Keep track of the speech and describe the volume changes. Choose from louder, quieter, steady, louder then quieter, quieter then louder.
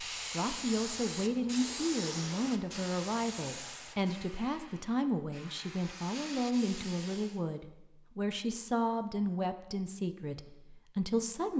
steady.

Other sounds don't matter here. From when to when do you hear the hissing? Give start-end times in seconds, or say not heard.
0.0-7.4.